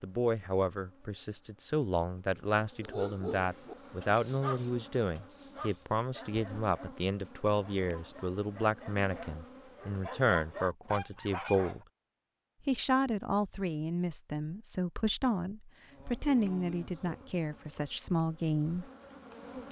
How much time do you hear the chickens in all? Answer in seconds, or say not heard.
not heard.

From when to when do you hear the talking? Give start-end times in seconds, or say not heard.
0.0-11.8, 12.7-18.9.